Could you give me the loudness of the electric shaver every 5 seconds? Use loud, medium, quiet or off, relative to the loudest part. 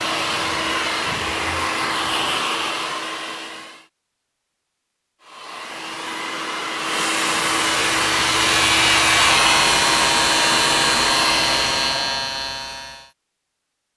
off, loud, loud.